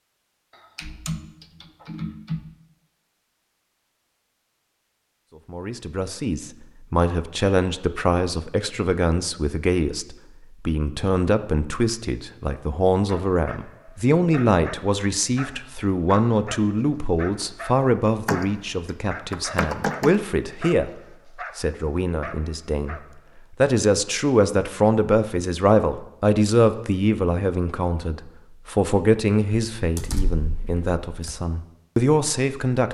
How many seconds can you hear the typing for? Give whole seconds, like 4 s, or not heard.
5 s.